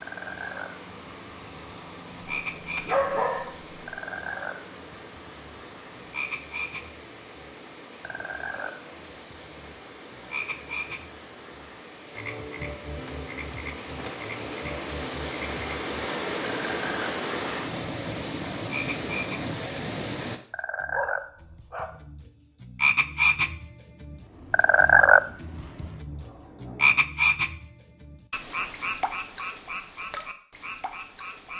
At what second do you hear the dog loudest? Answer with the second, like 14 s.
3 s.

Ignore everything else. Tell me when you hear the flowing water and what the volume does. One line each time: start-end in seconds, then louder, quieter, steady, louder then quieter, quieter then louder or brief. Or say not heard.
0.0-20.4 louder.